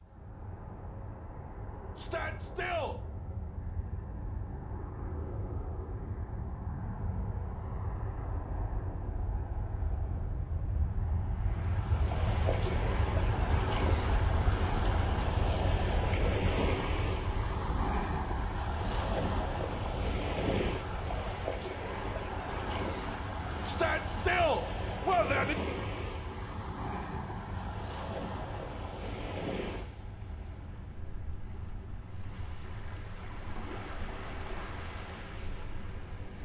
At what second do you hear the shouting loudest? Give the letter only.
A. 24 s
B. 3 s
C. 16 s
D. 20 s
A.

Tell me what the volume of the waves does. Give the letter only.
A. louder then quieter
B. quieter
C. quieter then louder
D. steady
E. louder
B.